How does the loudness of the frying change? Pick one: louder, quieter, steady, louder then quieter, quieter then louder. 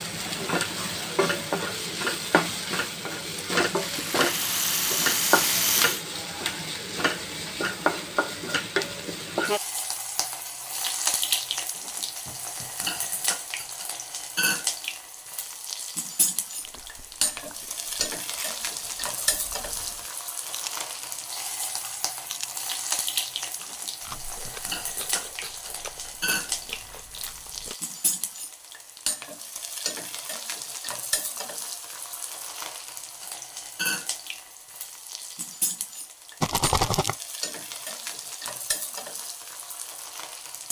quieter.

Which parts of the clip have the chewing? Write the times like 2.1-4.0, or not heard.
16.6-27.8.